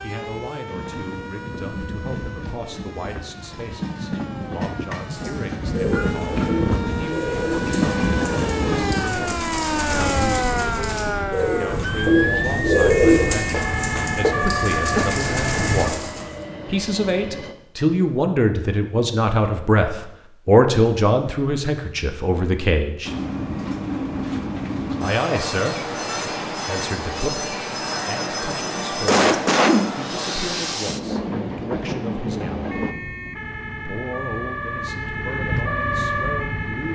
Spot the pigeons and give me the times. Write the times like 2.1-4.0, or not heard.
5.1-16.4.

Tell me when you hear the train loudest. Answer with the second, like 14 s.
8 s.